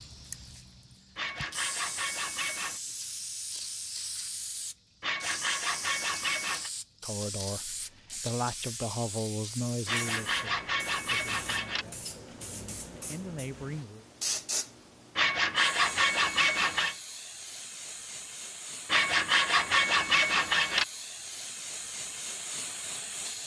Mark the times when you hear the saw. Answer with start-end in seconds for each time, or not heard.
1.1-2.8, 5.0-6.7, 9.8-11.8, 15.2-16.9, 18.9-20.9.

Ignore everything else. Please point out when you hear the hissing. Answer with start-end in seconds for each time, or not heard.
0.0-23.4.